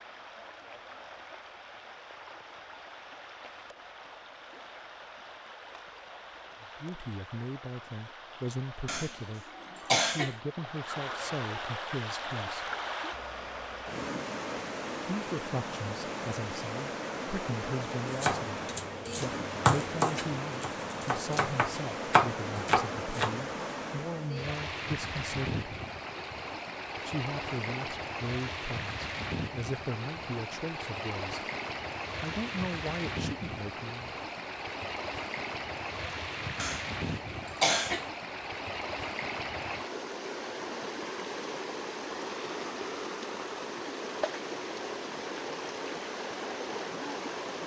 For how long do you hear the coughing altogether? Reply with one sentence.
The coughing can be heard for 3 seconds in total.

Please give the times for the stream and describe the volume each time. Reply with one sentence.
You can hear the stream from 0.0 to 47.6 s, getting louder.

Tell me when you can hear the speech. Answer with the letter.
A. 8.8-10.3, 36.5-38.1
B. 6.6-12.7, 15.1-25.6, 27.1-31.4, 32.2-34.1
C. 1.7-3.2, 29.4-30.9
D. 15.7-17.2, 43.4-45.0
B.